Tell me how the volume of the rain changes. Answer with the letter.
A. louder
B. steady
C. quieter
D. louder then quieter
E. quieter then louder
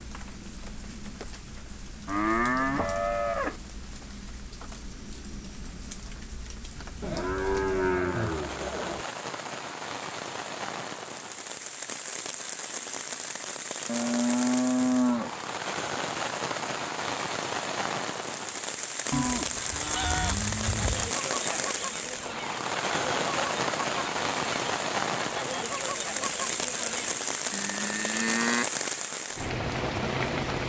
A.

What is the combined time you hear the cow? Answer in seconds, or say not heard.
8 s.